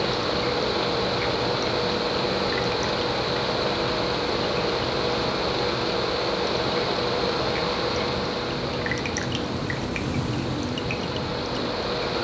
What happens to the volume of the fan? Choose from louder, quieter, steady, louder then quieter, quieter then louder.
quieter.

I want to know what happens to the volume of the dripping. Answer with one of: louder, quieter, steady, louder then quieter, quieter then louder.
louder.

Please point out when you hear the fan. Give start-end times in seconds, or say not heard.
0.0-12.1.